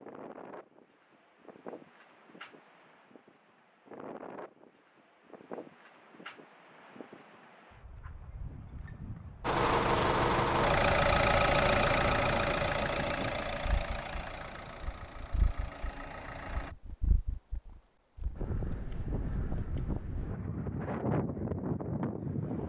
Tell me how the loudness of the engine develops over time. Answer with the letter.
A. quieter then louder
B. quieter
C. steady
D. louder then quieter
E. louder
B.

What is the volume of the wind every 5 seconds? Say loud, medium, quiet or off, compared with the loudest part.
quiet, quiet, medium, medium, loud.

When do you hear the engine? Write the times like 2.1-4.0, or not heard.
9.4-16.8.